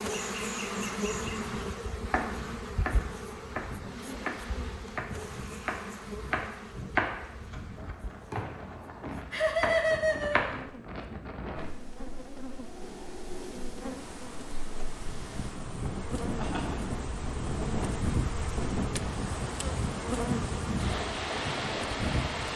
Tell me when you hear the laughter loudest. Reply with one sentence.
The volume of the laughter peaks at 10 seconds.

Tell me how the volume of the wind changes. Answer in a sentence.
The volume of the wind goes up.